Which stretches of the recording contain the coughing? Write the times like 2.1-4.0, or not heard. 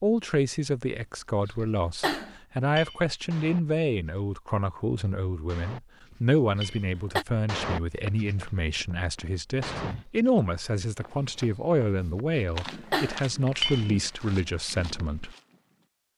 1.4-2.4, 6.5-7.2, 12.3-13.2.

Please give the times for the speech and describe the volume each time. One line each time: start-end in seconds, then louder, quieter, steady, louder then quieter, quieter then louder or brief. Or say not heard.
0.0-15.3 steady.